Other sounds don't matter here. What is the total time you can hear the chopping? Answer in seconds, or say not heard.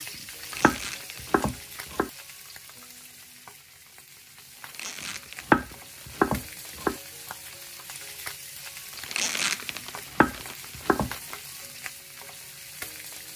4 s.